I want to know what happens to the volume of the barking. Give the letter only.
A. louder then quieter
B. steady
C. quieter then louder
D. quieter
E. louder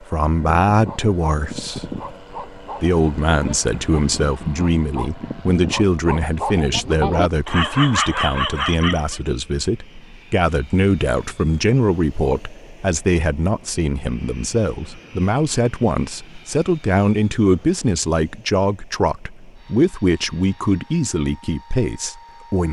E.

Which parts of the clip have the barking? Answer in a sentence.
You can hear the barking from 0.3 to 9.2 s.